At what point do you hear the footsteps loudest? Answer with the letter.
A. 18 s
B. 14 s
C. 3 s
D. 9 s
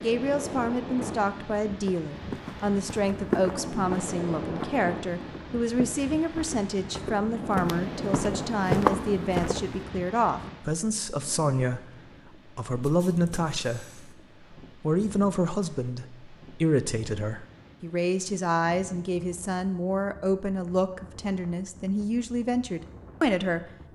D.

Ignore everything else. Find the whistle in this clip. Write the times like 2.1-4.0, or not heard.
not heard.